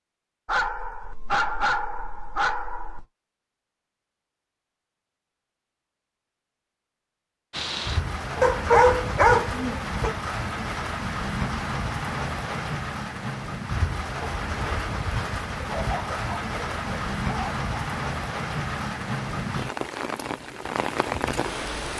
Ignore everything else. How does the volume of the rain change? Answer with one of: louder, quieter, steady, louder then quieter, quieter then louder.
steady.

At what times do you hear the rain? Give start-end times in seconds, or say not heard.
7.5-21.9.